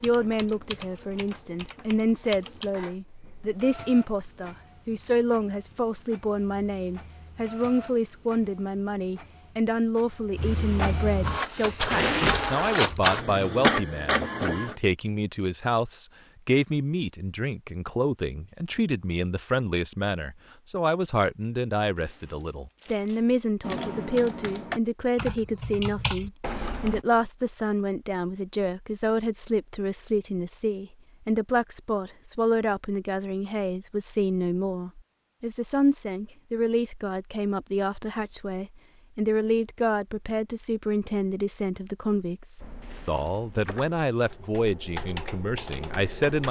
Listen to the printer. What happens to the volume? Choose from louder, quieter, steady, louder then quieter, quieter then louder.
louder.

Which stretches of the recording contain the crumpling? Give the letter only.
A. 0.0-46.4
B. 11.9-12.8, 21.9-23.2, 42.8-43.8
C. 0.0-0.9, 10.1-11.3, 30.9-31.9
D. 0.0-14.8
B.